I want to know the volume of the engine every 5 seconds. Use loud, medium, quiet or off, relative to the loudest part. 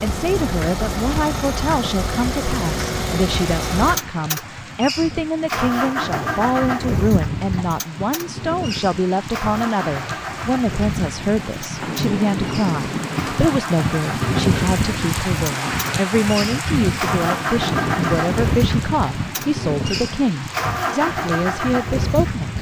loud, loud, medium, loud, loud.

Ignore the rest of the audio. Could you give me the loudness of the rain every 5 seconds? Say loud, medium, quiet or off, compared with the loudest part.
medium, medium, loud, loud, medium.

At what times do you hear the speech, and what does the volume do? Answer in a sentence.
You can hear the speech from 0.0 to 22.5 s, at a steady volume.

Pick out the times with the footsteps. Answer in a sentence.
You can't hear the footsteps here.